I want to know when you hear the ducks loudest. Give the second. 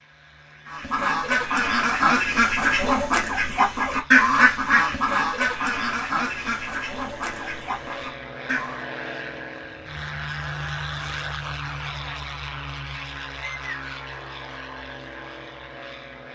4 s.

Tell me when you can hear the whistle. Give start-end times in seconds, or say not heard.
13.4-14.1.